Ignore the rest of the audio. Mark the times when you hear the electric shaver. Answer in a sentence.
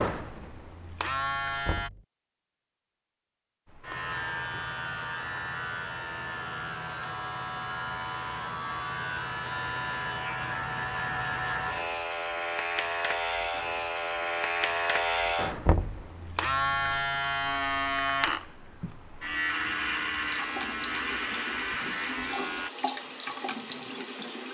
You can hear the electric shaver from 0.0 to 1.9 s and from 3.6 to 22.7 s.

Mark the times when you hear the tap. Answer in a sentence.
The tap can be heard from 20.2 to 24.4 s.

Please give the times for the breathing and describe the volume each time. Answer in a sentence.
The breathing can't be heard in this clip.